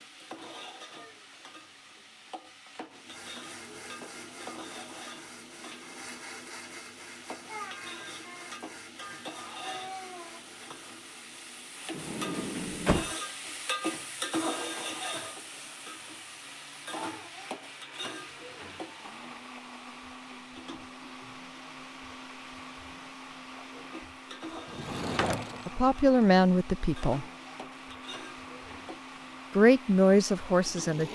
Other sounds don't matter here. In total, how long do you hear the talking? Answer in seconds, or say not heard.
3 s.